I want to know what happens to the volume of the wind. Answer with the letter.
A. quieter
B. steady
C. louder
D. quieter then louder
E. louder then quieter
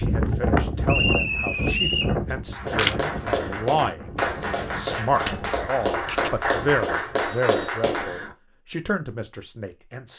A.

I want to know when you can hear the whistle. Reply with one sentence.
You can hear the whistle from 0.8 to 2.1 s and from 7.2 to 8.3 s.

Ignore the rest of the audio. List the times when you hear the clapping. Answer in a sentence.
You can hear the clapping from 2.5 to 8.1 s.